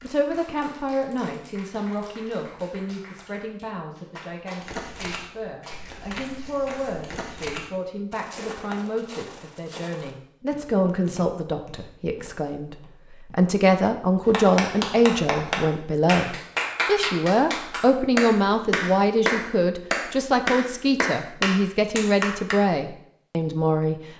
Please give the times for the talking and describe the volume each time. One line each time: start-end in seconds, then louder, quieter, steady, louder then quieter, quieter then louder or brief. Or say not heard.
0.0-23.9 louder.